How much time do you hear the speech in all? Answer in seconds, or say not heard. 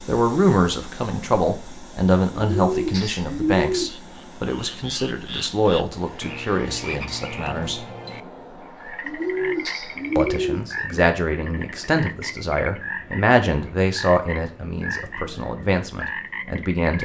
15 s.